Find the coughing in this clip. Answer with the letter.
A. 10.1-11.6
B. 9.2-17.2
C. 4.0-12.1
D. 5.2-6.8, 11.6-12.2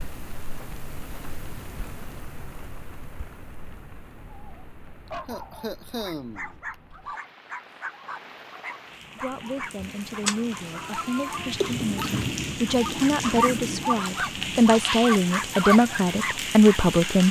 D.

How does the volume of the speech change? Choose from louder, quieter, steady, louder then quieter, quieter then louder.
louder.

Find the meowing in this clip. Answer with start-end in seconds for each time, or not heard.
10.1-11.6.